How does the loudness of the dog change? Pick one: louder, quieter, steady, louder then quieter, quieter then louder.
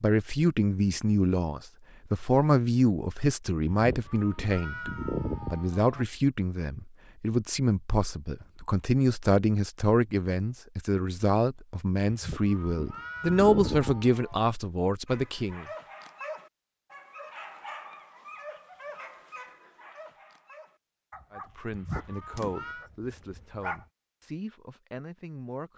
quieter.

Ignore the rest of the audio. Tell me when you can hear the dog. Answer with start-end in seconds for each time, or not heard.
15.1-23.9.